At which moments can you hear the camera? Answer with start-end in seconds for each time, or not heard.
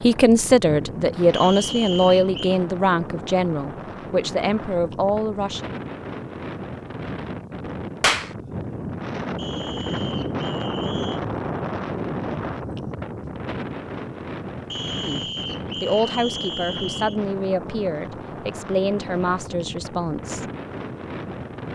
not heard.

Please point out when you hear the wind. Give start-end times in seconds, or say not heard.
0.0-21.7.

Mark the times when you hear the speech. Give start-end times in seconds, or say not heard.
0.0-5.6, 15.0-20.4.